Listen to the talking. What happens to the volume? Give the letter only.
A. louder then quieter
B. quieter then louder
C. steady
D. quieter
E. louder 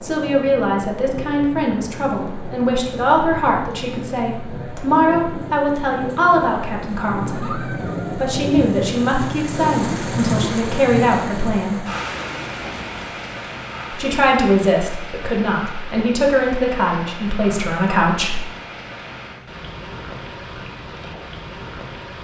C.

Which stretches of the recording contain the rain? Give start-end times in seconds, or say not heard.
0.0-22.1.